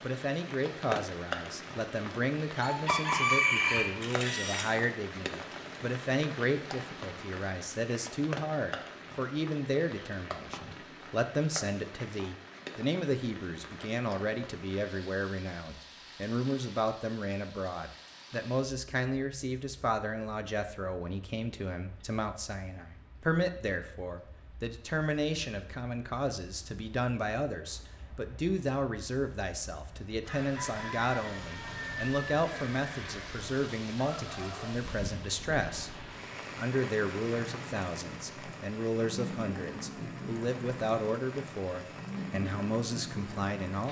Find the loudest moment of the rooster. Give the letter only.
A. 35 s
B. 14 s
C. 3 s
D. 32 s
C.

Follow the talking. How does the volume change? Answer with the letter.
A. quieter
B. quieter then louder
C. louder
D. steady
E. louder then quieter
D.